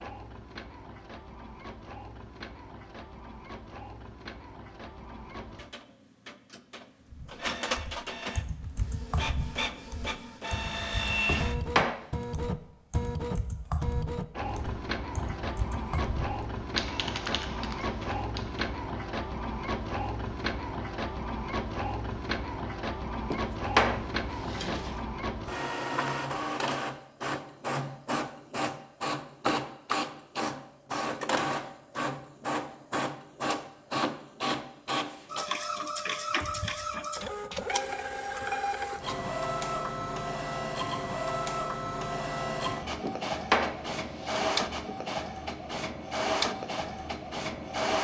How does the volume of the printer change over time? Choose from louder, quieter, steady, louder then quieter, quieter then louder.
louder.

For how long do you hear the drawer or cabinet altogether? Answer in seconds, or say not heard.
4 s.